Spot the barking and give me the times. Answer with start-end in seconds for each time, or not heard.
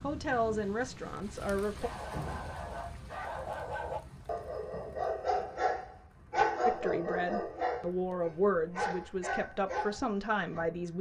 1.7-10.7.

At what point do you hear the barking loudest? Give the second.
7 s.